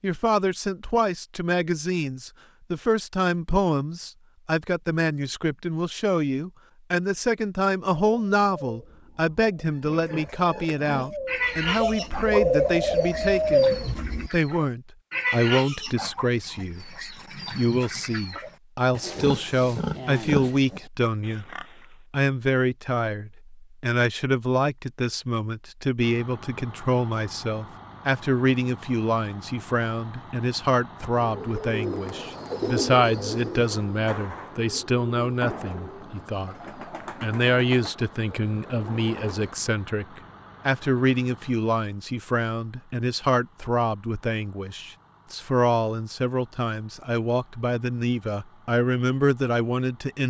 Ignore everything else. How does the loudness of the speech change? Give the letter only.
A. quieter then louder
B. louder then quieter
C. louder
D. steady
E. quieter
D.